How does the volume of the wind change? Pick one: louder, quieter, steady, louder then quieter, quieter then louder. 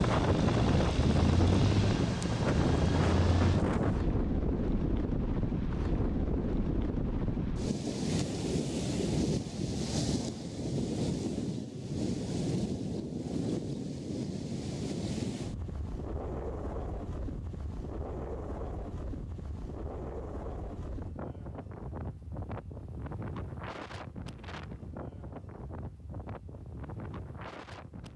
quieter.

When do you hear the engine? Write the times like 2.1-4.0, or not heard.
0.0-3.6.